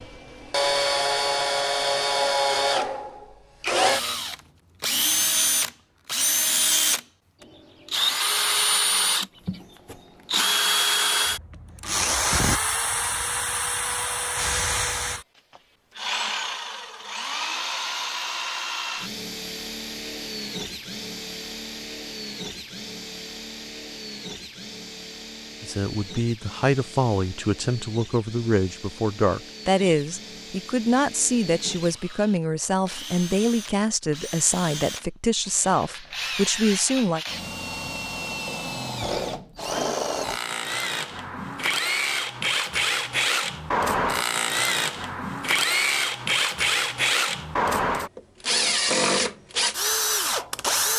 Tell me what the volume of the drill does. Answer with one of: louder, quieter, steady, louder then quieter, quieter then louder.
quieter then louder.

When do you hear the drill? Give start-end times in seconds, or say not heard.
0.0-50.9.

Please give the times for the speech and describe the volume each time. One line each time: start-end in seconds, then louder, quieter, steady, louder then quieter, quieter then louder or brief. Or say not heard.
25.6-37.2 steady.